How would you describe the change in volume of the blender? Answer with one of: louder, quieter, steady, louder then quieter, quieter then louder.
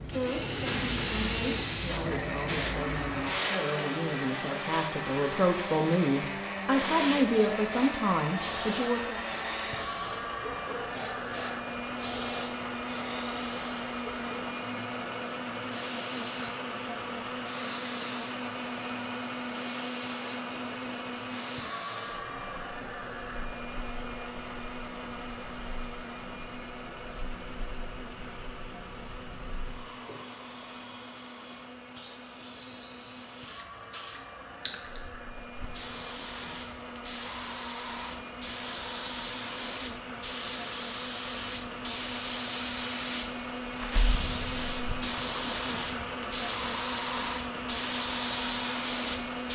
quieter then louder.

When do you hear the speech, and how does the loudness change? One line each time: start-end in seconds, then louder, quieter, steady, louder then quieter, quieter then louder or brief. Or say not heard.
0.0-9.2 louder.